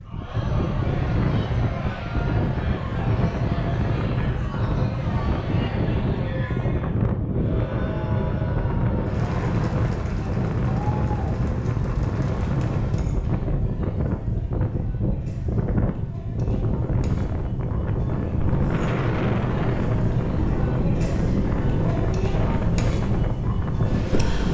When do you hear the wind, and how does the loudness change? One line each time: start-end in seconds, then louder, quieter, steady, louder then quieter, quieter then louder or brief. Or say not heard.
0.0-24.4 steady.